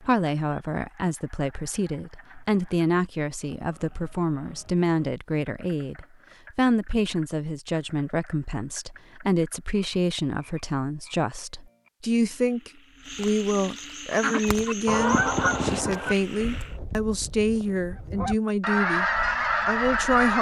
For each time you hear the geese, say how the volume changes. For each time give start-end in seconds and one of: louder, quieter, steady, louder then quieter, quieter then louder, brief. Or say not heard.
14.1-20.3 quieter then louder.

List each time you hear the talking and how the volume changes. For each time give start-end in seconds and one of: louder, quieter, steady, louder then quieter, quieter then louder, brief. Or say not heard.
0.1-19.1 steady
19.6-20.3 brief.